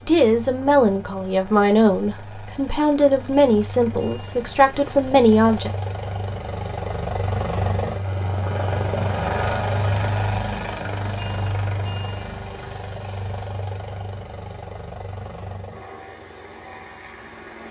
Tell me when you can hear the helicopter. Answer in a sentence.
You can hear the helicopter from 0.0 to 17.6 s.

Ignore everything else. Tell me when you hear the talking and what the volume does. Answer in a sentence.
You can hear the talking from 0.1 to 5.7 s, at a steady volume.